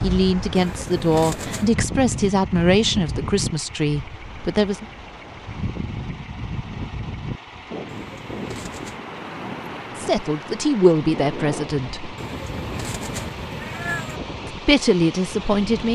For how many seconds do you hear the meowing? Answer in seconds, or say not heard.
4 s.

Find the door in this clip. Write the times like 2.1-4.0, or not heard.
not heard.